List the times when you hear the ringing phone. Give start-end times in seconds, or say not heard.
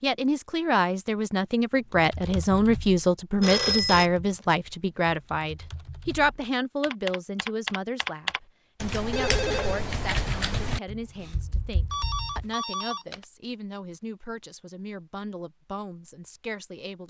3.4-4.1, 9.1-9.8, 11.9-13.2.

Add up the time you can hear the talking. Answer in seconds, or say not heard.
17 s.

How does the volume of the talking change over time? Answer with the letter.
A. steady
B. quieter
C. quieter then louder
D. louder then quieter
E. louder
B.